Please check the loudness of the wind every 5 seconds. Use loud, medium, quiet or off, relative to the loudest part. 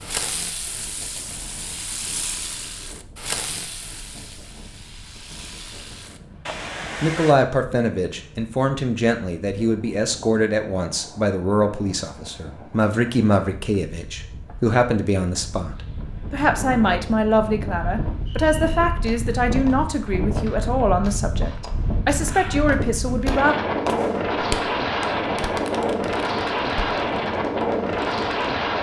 quiet, quiet, quiet, medium, loud, loud.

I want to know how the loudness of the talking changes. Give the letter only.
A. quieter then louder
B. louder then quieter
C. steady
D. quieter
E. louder
C.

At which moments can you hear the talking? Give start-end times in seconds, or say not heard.
7.0-23.6.